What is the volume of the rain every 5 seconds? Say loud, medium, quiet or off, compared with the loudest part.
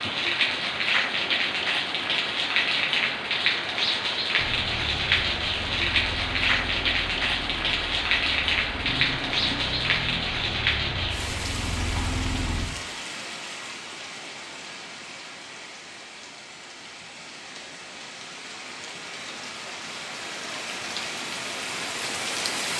loud, loud, medium, quiet, medium.